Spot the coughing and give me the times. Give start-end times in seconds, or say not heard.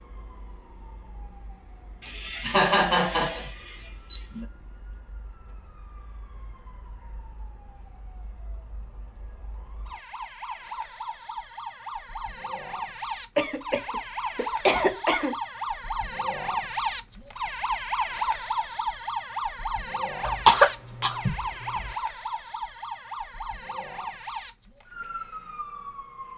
2.0-4.5, 13.3-15.3, 20.2-21.9.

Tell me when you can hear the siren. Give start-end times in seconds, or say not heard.
0.0-26.3.